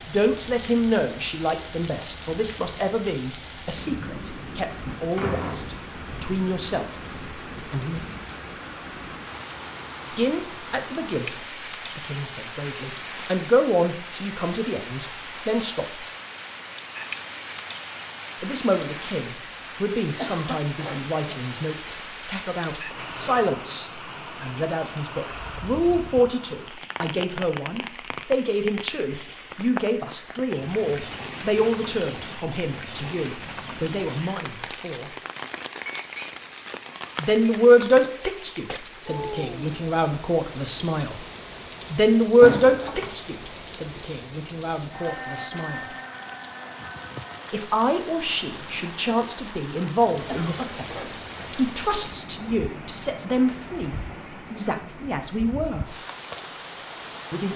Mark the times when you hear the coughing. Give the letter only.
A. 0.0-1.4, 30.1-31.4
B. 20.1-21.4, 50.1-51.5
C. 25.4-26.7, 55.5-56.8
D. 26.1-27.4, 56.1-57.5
B.